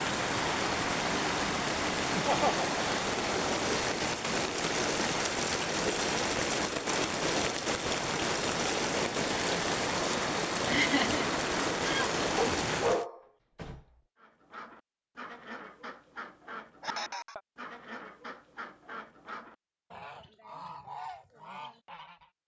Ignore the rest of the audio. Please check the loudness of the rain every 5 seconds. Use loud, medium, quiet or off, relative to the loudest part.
loud, loud, loud, off, off.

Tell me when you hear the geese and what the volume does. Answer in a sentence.
The geese can be heard from 14.2 to 22.3 s, at a steady volume.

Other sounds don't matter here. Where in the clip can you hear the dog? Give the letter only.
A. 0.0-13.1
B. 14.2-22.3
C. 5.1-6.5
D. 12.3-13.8
D.